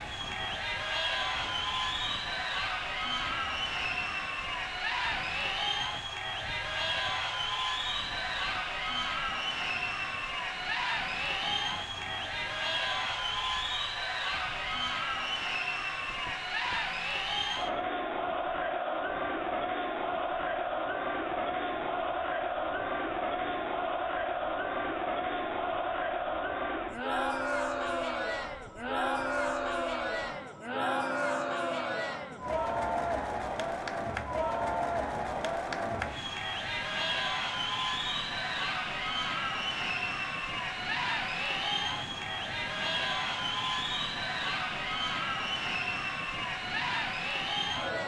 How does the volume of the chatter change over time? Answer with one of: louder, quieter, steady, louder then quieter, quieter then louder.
steady.